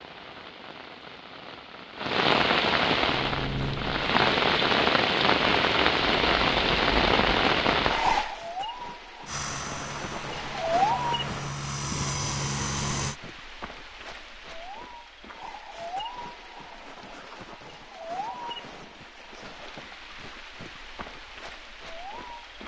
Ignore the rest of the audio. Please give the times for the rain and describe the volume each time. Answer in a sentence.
The rain can be heard from 0.0 to 22.6 s, getting quieter.